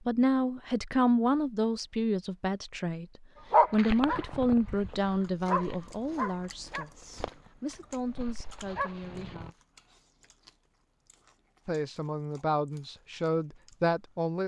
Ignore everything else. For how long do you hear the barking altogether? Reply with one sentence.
The barking can be heard for 6 seconds in total.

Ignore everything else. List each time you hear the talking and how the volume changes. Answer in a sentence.
You can hear the talking from 0.1 to 9.6 s, getting quieter; and briefly from 11.7 to 14.4 s.